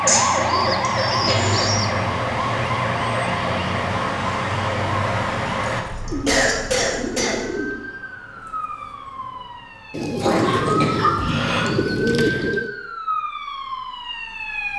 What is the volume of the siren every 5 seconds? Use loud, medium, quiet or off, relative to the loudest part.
loud, medium, medium.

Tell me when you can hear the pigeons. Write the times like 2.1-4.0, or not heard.
0.1-1.9, 6.0-7.8, 9.9-12.7.